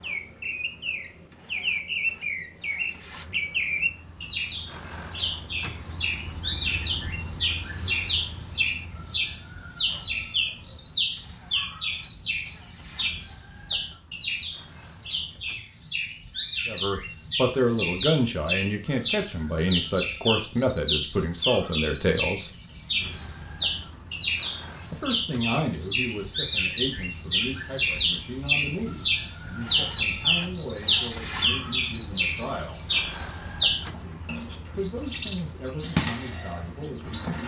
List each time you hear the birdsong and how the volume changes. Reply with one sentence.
You can hear the birdsong from 0.0 to 37.4 s, at a steady volume.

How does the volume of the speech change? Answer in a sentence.
The loudness of the speech goes down.